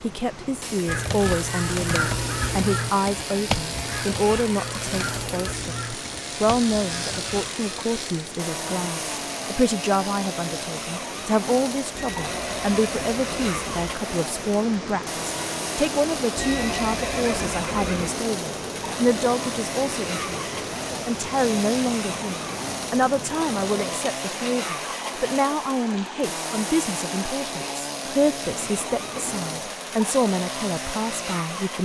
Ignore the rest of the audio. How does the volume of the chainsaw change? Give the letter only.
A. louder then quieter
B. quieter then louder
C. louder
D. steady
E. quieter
D.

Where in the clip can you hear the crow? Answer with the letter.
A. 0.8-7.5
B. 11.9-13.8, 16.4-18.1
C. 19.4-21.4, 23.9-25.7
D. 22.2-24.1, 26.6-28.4
A.